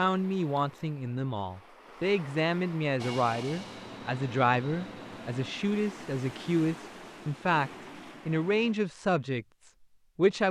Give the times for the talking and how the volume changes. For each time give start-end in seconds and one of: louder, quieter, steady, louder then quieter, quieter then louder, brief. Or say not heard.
0.0-10.4 steady.